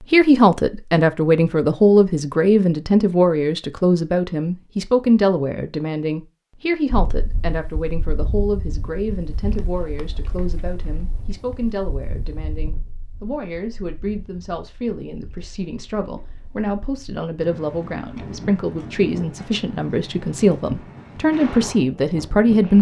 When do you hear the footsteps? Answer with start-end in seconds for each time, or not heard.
not heard.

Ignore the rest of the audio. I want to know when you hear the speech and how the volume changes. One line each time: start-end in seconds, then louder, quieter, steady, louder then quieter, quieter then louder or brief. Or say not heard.
0.0-22.7 quieter then louder.